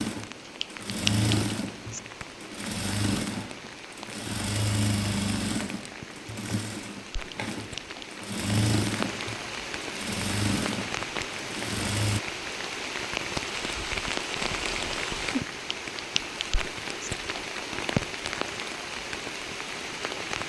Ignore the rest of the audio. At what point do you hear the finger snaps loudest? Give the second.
1 s.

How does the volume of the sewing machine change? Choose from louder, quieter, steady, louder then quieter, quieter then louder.
steady.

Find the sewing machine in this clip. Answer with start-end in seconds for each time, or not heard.
0.0-12.2.